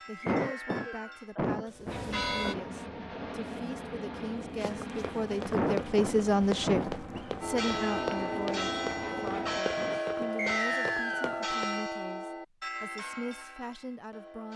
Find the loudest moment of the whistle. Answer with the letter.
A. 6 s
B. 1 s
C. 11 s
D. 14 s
C.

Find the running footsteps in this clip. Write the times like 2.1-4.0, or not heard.
4.5-11.8.